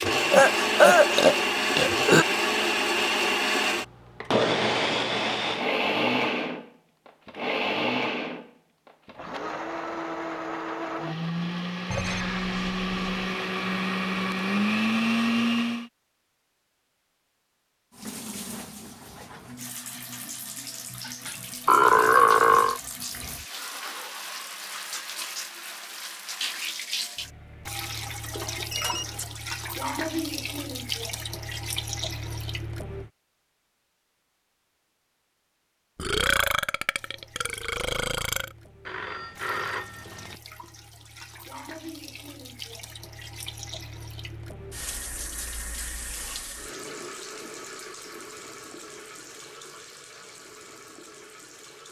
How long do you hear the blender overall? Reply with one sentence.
You can hear the blender for 16 seconds altogether.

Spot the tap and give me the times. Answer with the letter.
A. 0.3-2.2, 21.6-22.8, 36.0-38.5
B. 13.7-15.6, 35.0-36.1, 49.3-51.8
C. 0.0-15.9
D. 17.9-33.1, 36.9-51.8
D.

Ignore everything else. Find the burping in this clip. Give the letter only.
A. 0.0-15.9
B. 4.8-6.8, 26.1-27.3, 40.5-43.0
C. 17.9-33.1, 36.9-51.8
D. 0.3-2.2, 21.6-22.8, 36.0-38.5
D.